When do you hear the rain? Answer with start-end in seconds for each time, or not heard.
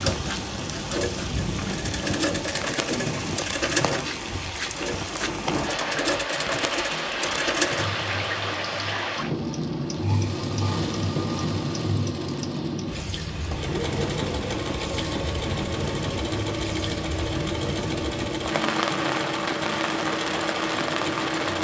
0.0-21.5.